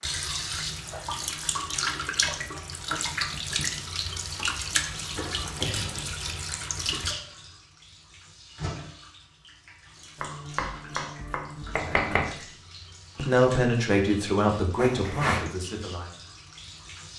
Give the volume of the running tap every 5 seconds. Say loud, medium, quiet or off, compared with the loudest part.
loud, medium, quiet, quiet.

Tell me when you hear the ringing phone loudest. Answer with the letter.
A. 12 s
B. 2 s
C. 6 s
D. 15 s
D.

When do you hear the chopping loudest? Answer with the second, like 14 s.
12 s.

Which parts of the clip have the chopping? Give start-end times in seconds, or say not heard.
10.2-12.3.